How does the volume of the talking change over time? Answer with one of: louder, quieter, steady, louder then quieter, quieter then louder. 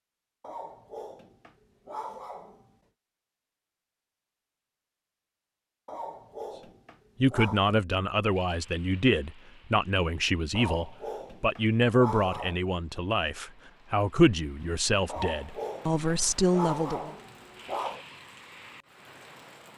steady.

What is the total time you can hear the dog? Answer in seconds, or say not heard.
9 s.